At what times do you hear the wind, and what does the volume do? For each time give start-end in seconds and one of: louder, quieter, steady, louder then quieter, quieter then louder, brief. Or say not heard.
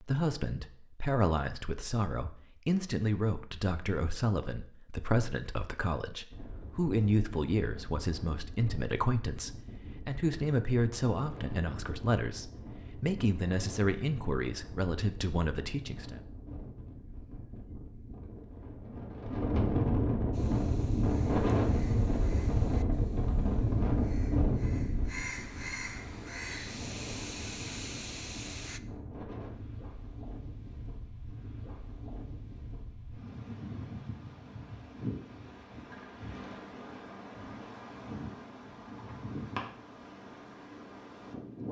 6.3-41.6 louder then quieter.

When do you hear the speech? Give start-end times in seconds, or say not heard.
0.0-16.1.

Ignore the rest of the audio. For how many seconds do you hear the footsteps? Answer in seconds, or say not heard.
not heard.